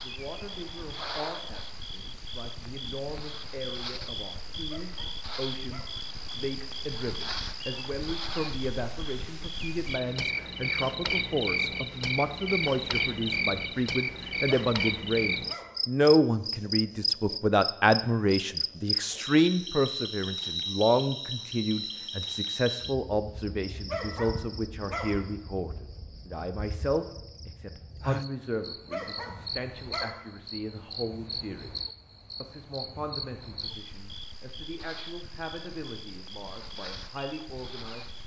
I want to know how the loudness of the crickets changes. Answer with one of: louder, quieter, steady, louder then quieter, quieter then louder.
louder then quieter.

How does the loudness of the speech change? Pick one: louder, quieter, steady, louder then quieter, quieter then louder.
louder then quieter.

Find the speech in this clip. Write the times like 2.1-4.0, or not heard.
0.0-38.1.